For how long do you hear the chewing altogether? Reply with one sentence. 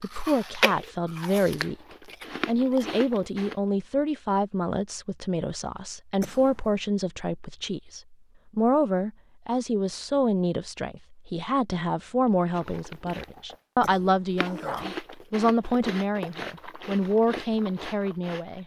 You can hear the chewing for 10 seconds altogether.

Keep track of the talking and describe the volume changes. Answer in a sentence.
The volume of the talking stays about the same.